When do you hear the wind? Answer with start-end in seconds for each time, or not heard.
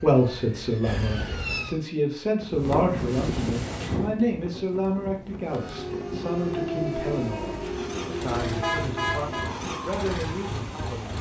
2.4-11.1.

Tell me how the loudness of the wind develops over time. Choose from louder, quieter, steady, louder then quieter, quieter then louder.
quieter.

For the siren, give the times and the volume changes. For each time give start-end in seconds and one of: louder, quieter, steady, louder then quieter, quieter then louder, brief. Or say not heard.
0.0-1.8 brief
5.4-11.1 quieter.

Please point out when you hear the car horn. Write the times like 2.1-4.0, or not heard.
8.6-9.4.